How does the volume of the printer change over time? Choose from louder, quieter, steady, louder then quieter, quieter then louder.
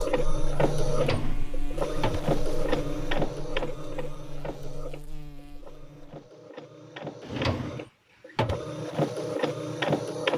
quieter then louder.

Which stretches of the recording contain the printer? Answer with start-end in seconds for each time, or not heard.
0.0-10.3.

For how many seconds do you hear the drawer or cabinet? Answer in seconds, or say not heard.
3 s.